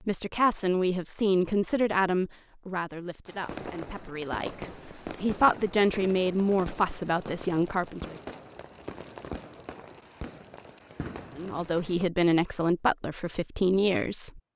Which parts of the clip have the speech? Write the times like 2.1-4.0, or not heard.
0.1-8.2, 11.3-14.4.